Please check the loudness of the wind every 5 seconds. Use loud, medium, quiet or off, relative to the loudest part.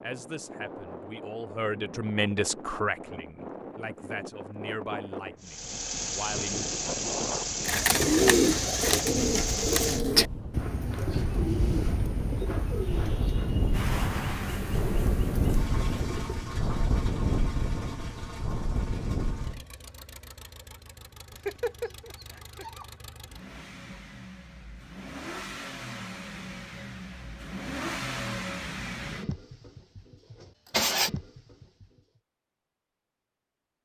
medium, medium, loud, loud, off, off, off.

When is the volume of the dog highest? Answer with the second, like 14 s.
22 s.